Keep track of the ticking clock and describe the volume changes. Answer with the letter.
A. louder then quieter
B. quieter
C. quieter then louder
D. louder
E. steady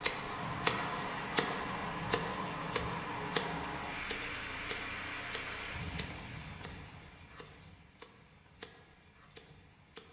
B.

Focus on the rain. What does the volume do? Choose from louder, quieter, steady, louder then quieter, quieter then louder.
quieter.